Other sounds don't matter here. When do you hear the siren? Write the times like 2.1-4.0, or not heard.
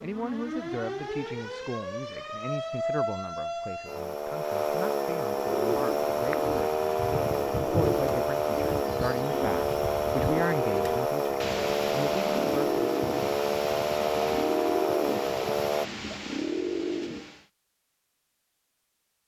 0.0-15.8.